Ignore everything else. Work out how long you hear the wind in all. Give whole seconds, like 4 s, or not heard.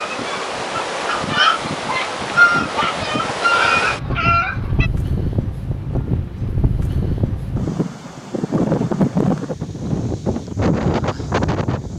12 s.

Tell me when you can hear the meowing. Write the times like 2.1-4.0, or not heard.
not heard.